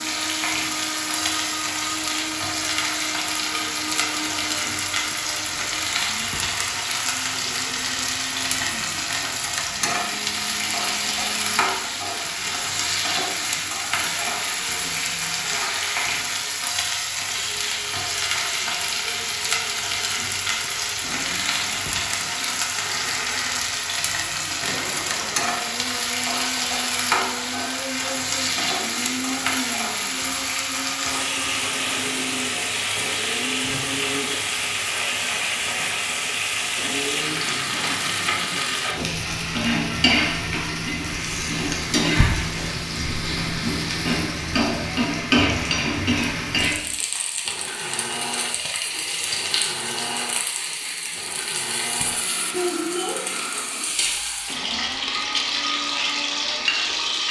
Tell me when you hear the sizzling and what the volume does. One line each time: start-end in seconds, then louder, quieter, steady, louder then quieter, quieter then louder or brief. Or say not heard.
0.0-57.2 steady.